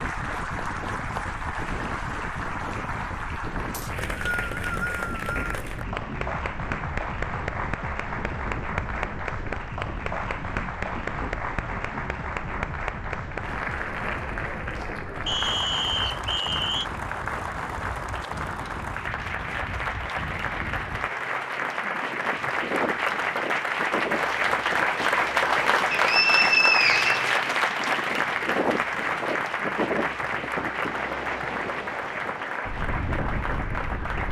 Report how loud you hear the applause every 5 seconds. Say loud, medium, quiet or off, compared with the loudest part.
medium, medium, medium, medium, loud, loud, medium.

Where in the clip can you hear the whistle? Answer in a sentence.
The whistle can be heard from 3.7 to 5.5 s, from 15.2 to 16.9 s and from 25.9 to 27.9 s.